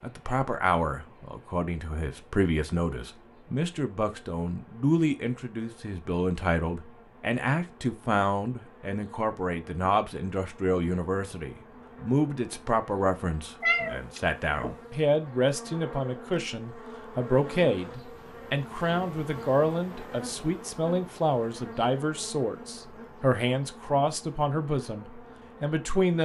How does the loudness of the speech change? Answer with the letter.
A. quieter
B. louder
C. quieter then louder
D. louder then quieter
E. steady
E.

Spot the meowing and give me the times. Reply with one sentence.
The meowing can be heard from 13.6 to 14.8 s.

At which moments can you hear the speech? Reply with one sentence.
You can hear the speech from 0.0 to 26.2 s.